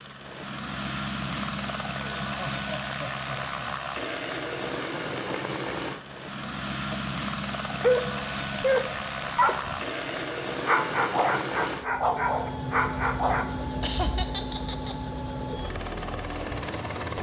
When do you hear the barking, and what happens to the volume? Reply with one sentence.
You can hear the barking from 7.7 to 13.5 s, at a steady volume.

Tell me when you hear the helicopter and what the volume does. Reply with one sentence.
The helicopter can be heard from 0.0 to 17.1 s, at a steady volume.